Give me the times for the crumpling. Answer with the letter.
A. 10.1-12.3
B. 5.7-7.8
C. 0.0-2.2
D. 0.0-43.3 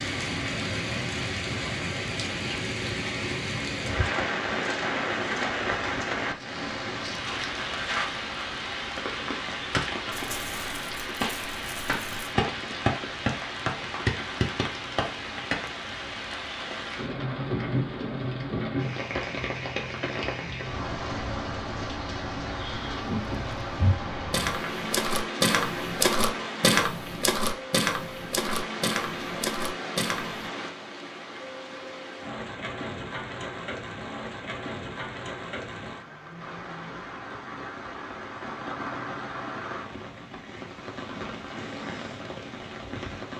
A.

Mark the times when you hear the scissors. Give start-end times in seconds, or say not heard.
not heard.